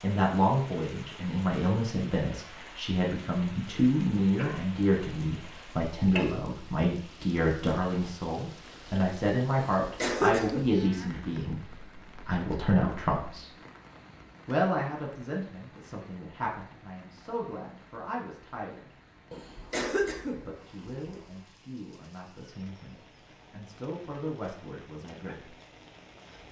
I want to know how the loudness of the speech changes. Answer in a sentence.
The volume of the speech goes down.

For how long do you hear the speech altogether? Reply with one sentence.
You can hear the speech for 23 seconds altogether.